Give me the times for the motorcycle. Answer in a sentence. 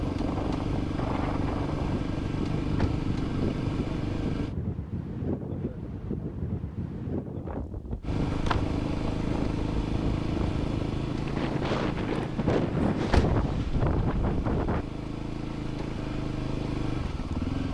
The motorcycle can be heard from 0.0 to 4.5 s and from 8.0 to 17.6 s.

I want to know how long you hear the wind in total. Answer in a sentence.
The wind can be heard for 15 seconds in total.